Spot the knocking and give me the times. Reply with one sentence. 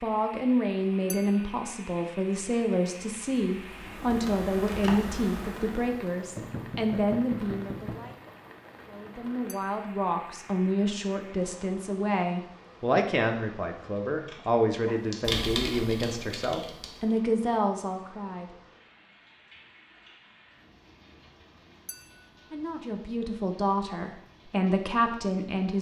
The knocking can be heard from 6.3 to 8.2 s.